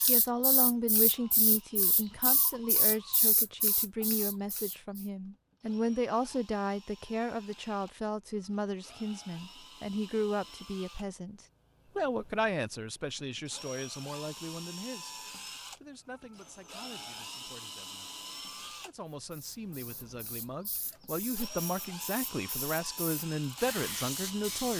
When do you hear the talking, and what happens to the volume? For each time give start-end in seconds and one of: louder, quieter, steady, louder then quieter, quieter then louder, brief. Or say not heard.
0.1-24.7 quieter then louder.